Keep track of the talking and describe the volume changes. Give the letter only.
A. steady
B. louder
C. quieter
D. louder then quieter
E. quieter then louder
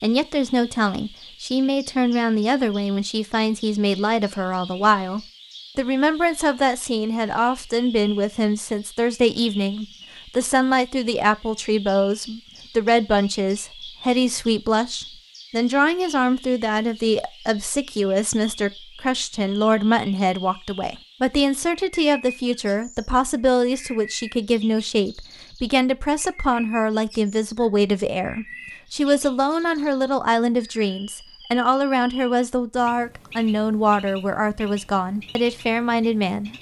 A.